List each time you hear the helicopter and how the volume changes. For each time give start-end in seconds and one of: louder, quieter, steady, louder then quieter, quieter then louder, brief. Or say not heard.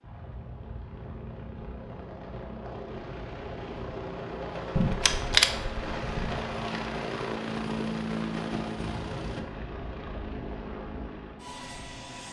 0.0-12.2 louder then quieter.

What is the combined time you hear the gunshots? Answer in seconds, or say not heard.
2 s.